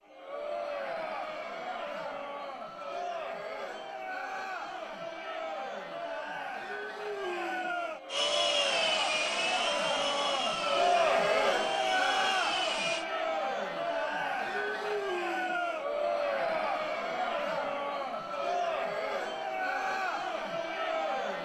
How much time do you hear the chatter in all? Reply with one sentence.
The chatter can be heard for 21 seconds in total.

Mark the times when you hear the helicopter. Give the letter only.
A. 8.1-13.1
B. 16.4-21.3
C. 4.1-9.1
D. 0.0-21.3
A.